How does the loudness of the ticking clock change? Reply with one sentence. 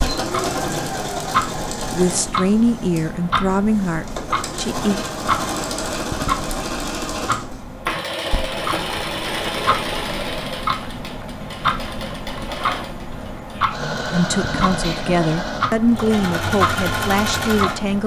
The loudness of the ticking clock stays about the same.